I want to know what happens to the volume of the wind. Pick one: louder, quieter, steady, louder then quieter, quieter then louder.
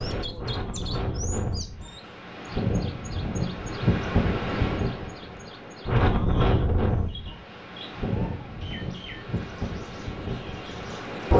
louder then quieter.